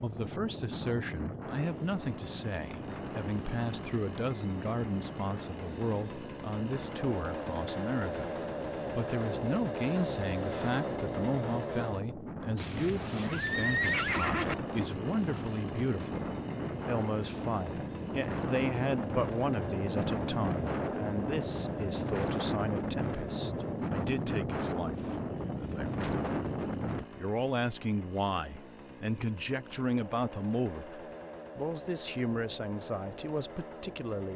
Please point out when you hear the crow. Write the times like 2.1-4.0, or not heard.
not heard.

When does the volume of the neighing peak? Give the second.
14 s.